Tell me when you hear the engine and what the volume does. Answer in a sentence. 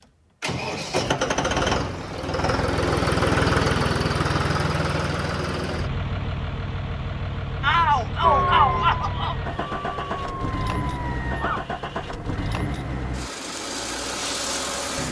The engine can be heard from 0.4 to 15.0 s, getting quieter.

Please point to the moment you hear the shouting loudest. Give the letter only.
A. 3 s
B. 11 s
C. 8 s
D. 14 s
C.